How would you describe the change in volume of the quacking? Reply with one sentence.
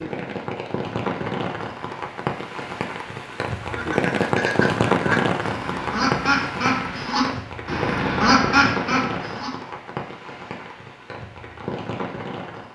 The loudness of the quacking goes up.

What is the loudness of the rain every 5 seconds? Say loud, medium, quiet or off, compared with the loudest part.
loud, loud, medium.